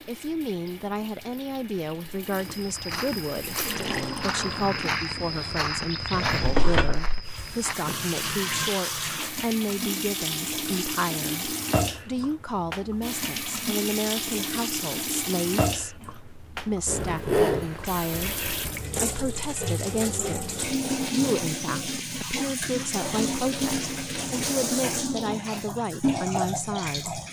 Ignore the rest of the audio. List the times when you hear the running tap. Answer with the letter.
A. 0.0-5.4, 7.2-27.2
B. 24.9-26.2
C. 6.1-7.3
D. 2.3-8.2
A.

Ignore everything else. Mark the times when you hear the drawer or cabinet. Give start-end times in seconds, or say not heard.
6.1-7.3.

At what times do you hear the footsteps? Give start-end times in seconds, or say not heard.
2.3-8.2.